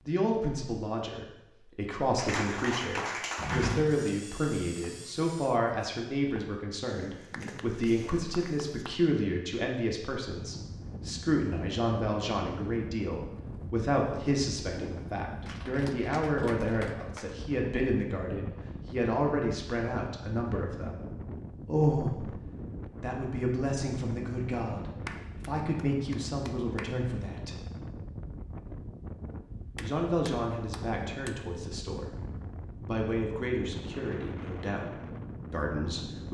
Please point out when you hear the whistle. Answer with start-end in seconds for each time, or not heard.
not heard.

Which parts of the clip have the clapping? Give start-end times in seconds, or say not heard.
2.1-3.8, 7.3-8.9, 15.4-17.4, 25.1-26.9, 29.8-31.4.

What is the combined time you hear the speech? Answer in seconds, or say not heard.
32 s.